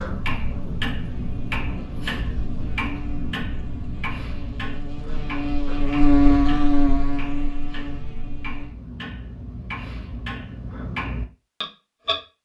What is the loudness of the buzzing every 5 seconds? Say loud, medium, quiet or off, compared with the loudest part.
quiet, loud, off.